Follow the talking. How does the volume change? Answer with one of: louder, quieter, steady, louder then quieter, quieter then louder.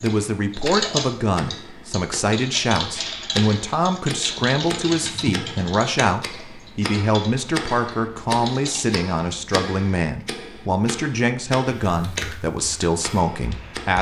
steady.